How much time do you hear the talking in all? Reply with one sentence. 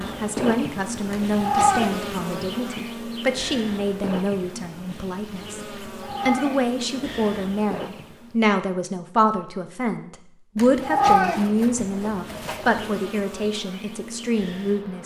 You can hear the talking for 14 seconds altogether.